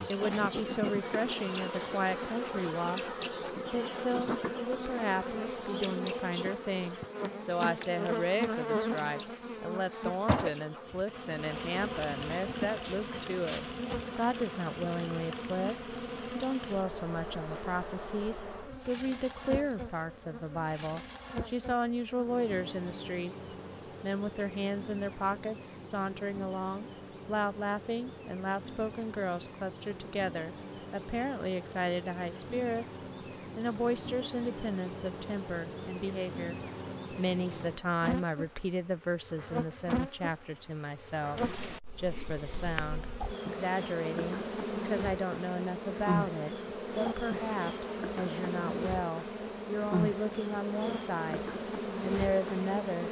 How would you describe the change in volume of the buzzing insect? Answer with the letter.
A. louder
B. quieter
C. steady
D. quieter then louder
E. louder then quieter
D.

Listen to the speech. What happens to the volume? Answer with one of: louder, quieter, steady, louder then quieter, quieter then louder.
steady.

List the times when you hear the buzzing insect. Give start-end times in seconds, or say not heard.
0.0-53.0.